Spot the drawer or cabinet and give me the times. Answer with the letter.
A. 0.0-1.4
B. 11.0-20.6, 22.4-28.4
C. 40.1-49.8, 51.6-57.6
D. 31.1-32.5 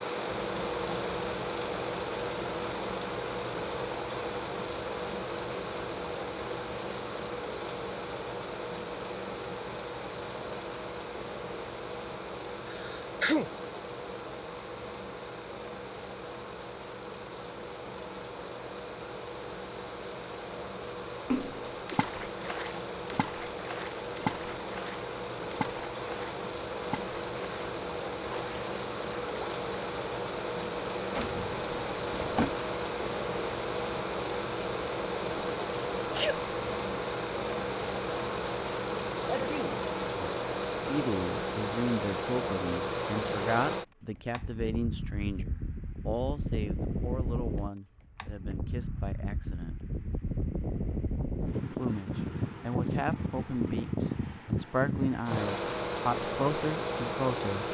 D.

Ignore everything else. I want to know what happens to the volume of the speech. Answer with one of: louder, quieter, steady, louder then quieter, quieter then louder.
quieter then louder.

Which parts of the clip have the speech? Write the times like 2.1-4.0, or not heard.
40.1-49.8, 51.6-57.6.